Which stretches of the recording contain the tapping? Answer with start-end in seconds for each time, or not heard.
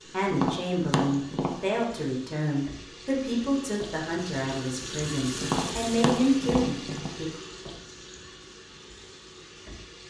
0.3-1.9, 5.4-7.2.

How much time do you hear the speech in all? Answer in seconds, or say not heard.
7 s.